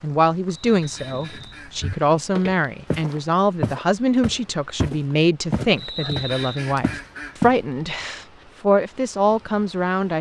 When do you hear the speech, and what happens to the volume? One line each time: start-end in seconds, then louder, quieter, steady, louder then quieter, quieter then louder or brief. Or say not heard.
0.0-10.1 steady.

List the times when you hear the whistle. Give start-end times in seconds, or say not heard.
0.8-1.6, 5.8-6.7.